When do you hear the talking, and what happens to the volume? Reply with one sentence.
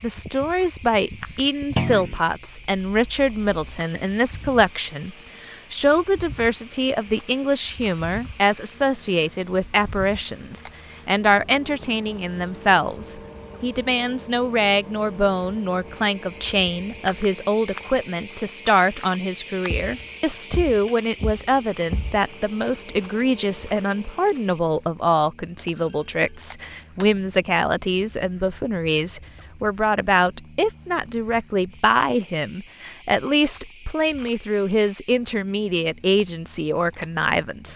The talking can be heard from 0.0 to 37.7 s, at a steady volume.